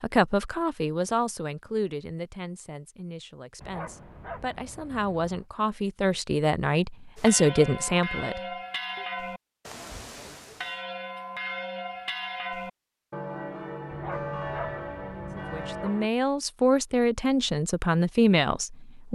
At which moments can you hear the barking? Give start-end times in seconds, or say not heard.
3.6-5.5, 13.8-15.9.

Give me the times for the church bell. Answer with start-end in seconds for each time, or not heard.
7.2-16.1.